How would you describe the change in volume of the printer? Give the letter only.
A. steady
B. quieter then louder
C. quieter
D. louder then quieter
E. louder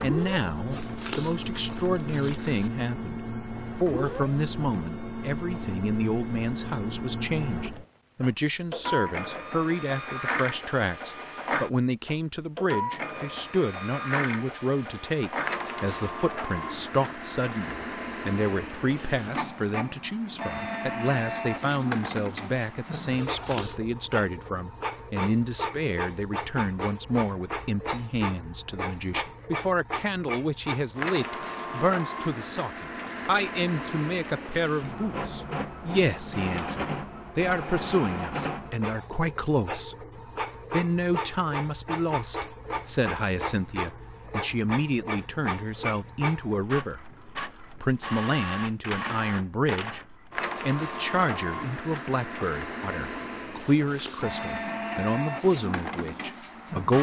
A.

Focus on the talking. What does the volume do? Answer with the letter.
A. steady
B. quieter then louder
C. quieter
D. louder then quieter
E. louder
A.